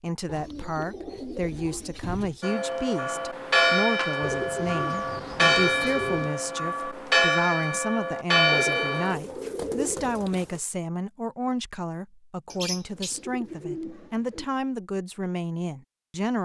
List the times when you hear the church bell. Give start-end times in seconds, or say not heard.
2.4-9.2.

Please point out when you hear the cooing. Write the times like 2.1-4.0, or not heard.
0.2-2.4, 4.2-6.3, 8.5-10.6, 12.5-14.4.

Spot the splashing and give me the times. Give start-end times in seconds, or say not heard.
not heard.